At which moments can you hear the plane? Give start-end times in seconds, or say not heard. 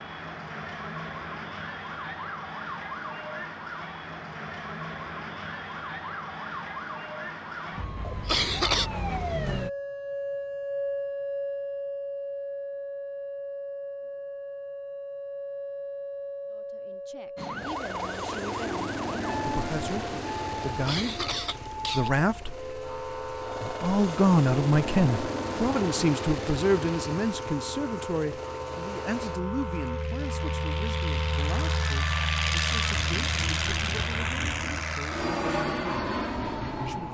17.4-37.0.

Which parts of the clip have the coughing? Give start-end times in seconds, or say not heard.
8.1-8.9, 20.6-22.1.